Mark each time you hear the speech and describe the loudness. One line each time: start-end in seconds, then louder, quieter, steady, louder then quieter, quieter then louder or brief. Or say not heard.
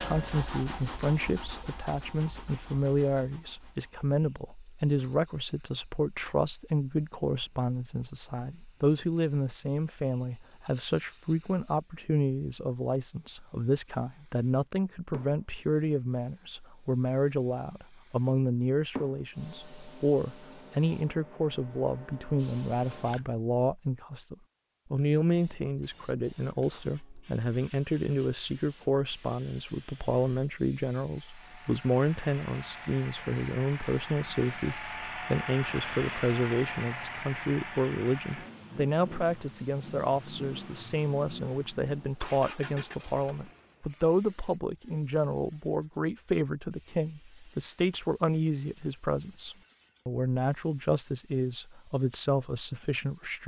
0.0-53.4 steady.